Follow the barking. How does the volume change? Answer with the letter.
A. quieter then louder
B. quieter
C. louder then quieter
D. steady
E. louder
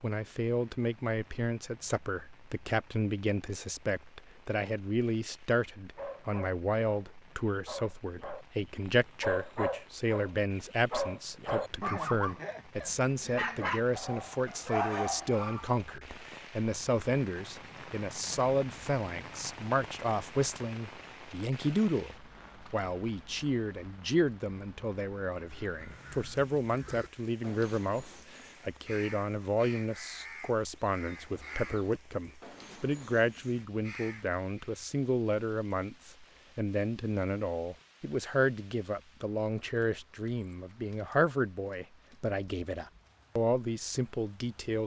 E.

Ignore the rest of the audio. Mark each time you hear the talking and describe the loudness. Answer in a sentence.
The talking can be heard from 0.0 to 44.8 s, at a steady volume.